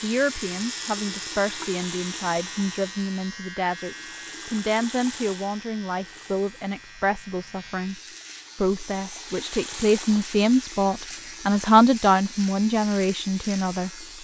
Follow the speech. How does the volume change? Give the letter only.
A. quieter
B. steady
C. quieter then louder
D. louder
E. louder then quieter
D.